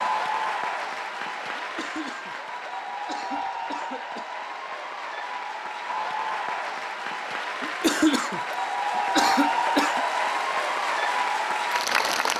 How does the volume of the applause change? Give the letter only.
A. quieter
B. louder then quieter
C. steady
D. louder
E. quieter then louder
D.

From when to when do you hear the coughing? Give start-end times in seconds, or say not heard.
1.6-4.3, 7.6-10.1.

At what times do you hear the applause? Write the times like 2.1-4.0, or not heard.
0.0-12.3.